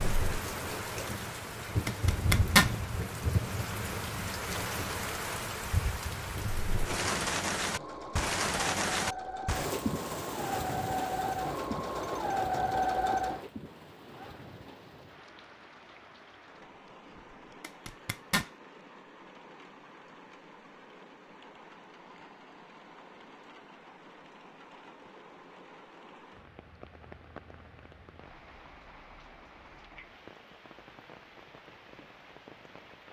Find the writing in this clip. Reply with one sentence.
You can't hear the writing here.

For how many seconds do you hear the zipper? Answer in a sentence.
You can hear the zipper for 2 seconds altogether.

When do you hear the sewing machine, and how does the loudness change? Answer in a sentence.
The sewing machine can be heard from 6.7 to 13.4 s, getting louder.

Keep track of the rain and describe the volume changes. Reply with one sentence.
The loudness of the rain goes down.